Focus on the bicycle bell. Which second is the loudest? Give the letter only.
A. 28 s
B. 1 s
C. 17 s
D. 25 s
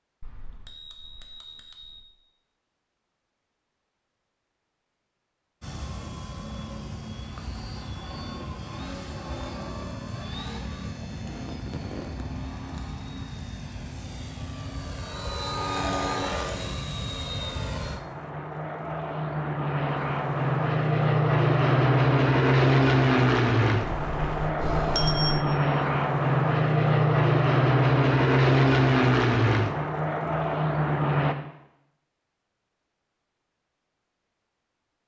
D.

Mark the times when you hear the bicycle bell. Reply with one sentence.
The bicycle bell can be heard from 0.2 to 2.0 s, from 16.0 to 16.8 s and from 23.8 to 25.4 s.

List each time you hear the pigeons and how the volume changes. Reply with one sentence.
You can't hear the pigeons here.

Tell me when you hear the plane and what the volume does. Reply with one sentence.
The plane can be heard from 5.6 to 31.4 s, getting louder.